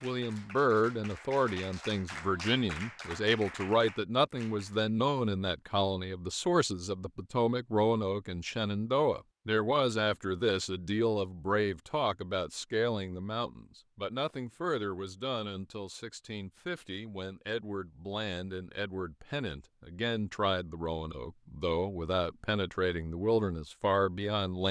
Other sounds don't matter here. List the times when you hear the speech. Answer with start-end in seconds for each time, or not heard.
0.0-24.6.